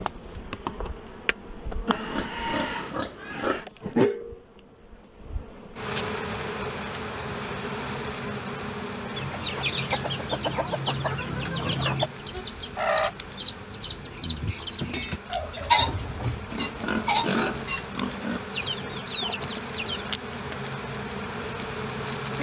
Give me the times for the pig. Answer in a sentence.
The pig can be heard from 1.9 to 3.6 s and from 16.5 to 18.4 s.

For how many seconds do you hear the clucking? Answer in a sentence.
You can hear the clucking for 11 seconds altogether.